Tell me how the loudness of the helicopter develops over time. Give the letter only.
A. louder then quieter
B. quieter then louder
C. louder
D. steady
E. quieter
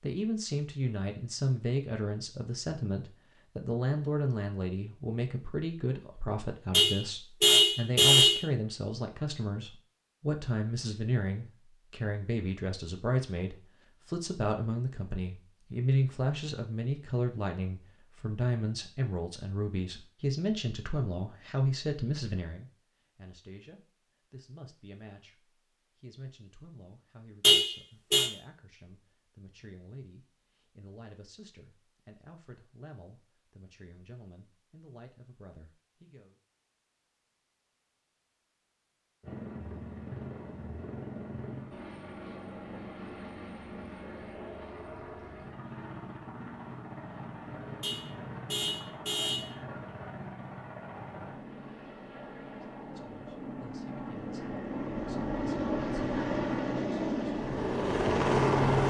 C.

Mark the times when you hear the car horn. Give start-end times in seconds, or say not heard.
6.7-8.4, 27.4-28.3, 47.8-49.5.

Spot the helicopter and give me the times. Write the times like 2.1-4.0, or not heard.
39.2-58.8.